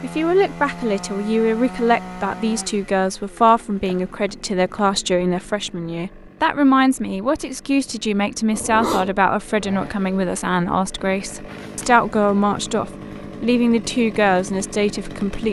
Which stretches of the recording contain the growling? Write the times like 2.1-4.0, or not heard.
8.5-9.2.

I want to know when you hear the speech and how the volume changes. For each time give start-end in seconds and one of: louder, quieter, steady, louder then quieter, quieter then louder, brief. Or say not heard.
0.0-15.4 steady.